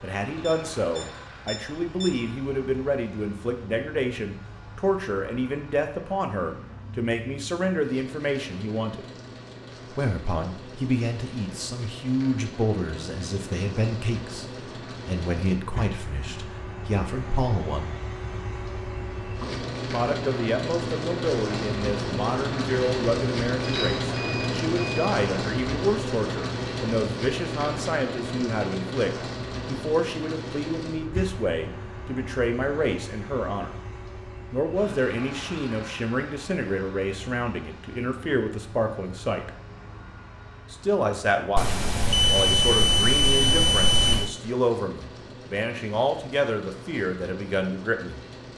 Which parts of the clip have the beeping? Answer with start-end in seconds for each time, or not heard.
0.3-2.1, 23.6-25.1, 41.5-44.3.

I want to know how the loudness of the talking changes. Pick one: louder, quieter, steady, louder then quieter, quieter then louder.
steady.